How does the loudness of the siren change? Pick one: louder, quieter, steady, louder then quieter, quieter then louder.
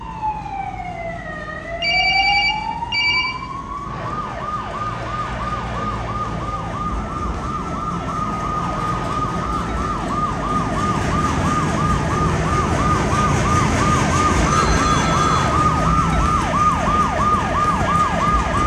louder.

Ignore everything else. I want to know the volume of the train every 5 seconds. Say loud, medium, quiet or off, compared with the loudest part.
quiet, medium, loud, loud.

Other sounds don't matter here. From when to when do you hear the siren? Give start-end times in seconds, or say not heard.
0.0-18.6.